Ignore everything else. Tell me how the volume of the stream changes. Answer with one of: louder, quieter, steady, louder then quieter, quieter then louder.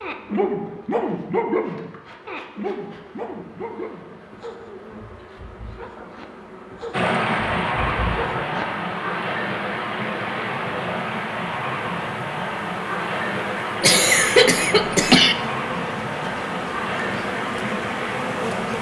steady.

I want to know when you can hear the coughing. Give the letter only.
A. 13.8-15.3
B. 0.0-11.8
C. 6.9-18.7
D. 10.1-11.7
A.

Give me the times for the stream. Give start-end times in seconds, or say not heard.
6.9-18.7.